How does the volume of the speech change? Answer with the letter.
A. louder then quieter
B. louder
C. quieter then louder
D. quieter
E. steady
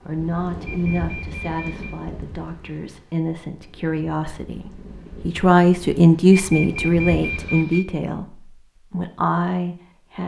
A.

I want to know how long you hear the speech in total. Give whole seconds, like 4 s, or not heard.
10 s.